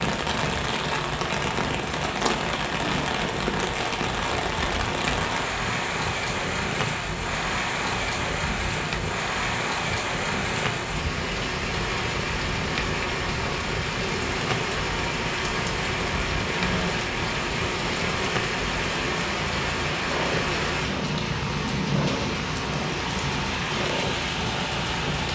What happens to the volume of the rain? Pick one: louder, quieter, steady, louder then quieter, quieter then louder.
steady.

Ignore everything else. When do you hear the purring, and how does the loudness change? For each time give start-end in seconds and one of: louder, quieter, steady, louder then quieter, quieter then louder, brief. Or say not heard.
0.0-25.3 steady.